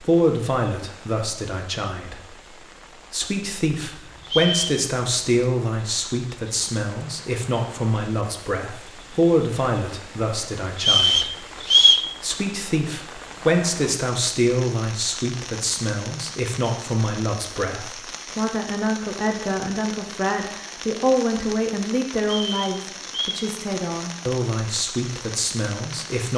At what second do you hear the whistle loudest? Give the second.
12 s.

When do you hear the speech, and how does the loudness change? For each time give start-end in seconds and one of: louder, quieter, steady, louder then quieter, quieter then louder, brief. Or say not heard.
0.0-26.3 steady.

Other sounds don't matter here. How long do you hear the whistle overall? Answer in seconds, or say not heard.
3 s.